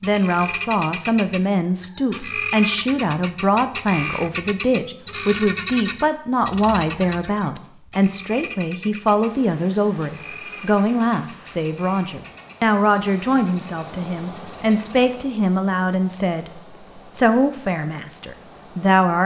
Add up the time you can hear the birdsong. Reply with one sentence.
You can hear the birdsong for 15 seconds altogether.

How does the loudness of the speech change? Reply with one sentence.
The volume of the speech stays about the same.